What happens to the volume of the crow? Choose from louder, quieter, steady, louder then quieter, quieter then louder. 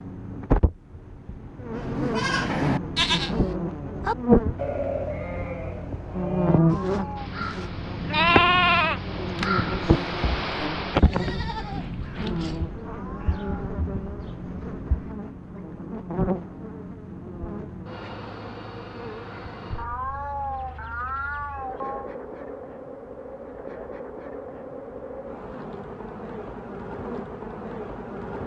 louder then quieter.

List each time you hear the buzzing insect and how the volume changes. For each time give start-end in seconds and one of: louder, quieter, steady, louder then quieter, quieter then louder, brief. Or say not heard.
0.0-28.4 quieter.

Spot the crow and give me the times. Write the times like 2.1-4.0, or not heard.
7.2-15.2.